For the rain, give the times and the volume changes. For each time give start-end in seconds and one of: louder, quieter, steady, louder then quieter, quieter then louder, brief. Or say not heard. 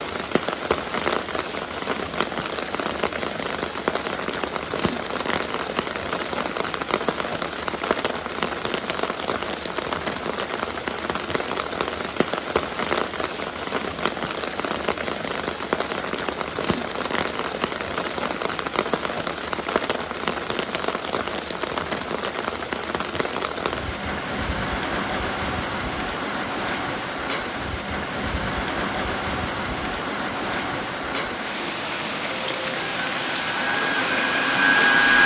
0.0-35.2 steady.